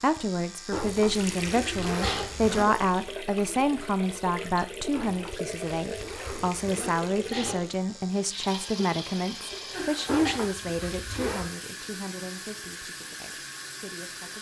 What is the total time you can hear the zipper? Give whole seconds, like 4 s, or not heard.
5 s.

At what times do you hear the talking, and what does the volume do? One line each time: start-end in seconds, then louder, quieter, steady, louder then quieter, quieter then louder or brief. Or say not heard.
0.0-14.3 quieter.